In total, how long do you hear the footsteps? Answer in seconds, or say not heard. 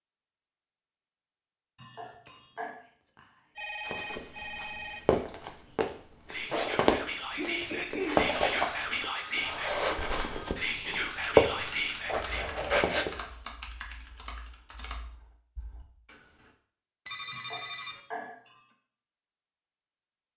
9 s.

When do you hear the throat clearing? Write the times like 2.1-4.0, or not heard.
1.8-2.8, 7.3-8.2, 17.3-18.6.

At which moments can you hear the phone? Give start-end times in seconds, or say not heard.
3.5-5.0, 8.6-10.7, 17.1-18.0.